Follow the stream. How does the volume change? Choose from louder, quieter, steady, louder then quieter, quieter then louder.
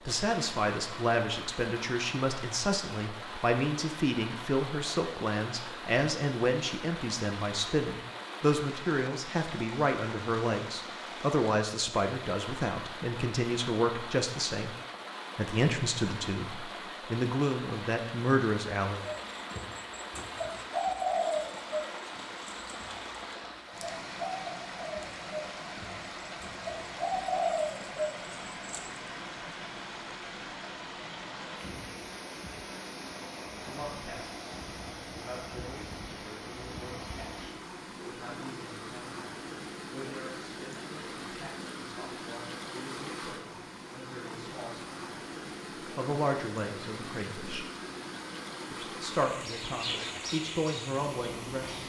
steady.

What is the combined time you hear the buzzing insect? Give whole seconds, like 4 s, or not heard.
not heard.